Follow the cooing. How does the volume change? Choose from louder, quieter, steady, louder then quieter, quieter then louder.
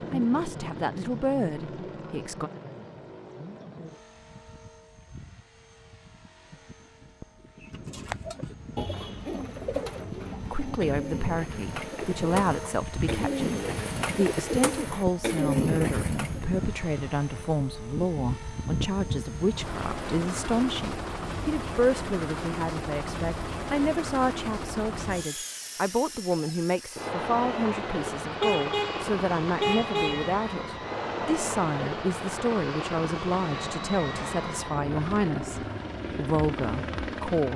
louder.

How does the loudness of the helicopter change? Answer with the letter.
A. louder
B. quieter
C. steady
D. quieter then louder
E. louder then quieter
A.